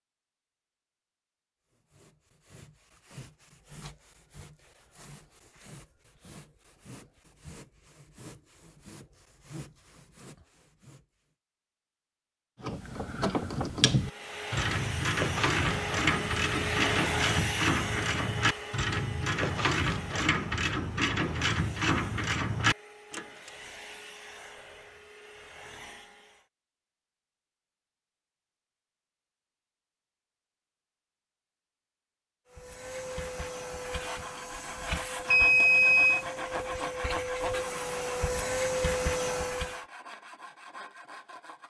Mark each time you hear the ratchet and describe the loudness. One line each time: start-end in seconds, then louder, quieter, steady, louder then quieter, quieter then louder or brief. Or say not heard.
12.6-23.5 steady.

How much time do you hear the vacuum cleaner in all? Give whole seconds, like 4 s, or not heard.
20 s.